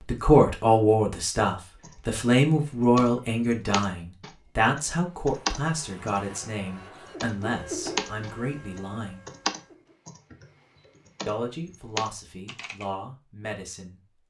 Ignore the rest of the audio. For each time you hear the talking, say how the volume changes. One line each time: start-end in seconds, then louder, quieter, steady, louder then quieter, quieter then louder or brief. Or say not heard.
0.1-9.2 quieter
11.2-14.2 brief.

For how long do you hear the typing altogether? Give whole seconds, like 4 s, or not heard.
11 s.